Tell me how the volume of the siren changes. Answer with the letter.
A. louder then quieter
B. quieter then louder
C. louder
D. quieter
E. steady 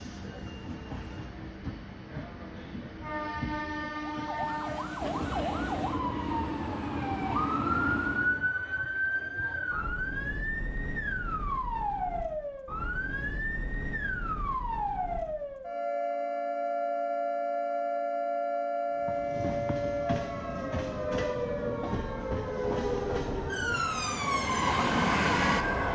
E.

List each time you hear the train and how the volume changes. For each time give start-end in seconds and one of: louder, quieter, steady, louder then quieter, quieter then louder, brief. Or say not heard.
0.0-8.4 louder
18.9-25.9 louder.